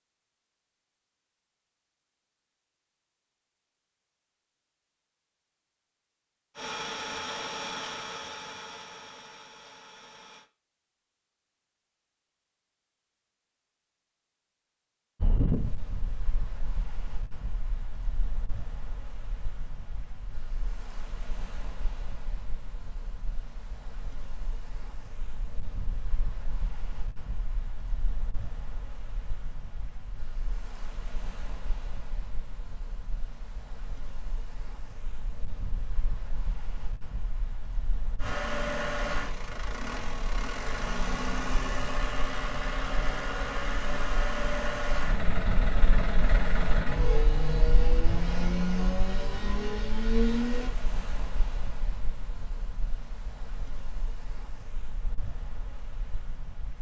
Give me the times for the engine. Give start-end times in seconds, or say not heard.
6.5-10.5, 38.1-50.8.